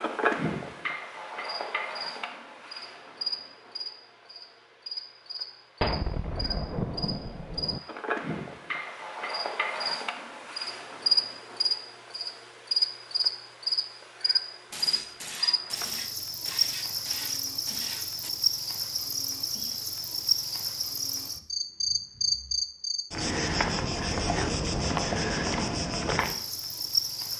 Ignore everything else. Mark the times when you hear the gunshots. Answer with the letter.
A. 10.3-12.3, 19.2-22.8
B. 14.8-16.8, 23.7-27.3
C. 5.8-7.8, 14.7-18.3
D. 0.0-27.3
C.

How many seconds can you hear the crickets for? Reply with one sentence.
You can hear the crickets for 27 seconds altogether.